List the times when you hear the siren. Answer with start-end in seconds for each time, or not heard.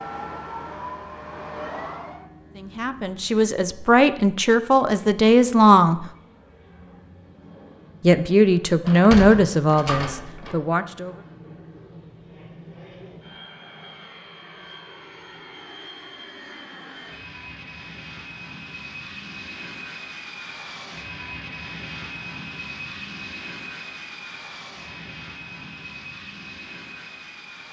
0.0-2.2.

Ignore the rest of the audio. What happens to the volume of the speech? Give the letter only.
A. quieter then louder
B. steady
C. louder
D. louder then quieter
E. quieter
D.